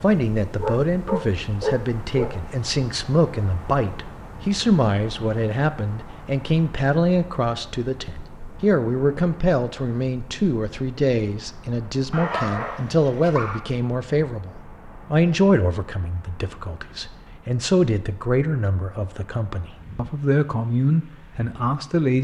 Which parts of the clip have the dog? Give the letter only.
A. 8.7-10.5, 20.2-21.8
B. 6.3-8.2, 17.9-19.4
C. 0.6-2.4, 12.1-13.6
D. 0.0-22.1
C.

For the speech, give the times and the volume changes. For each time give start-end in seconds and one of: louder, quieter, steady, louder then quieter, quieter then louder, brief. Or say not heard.
0.0-22.1 steady.